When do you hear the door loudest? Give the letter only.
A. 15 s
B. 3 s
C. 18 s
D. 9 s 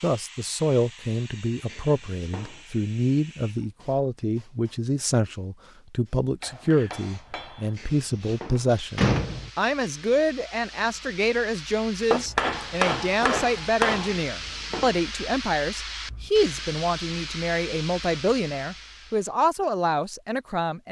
D.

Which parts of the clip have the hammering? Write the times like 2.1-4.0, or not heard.
6.4-7.8, 12.1-14.2.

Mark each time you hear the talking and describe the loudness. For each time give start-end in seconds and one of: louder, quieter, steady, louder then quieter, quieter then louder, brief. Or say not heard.
0.0-20.8 steady.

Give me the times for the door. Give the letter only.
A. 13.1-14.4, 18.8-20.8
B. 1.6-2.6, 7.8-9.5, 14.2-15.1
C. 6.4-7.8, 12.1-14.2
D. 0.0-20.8
B.